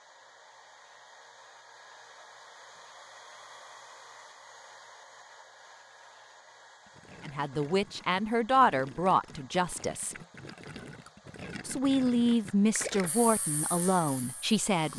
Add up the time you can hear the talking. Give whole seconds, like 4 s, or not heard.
6 s.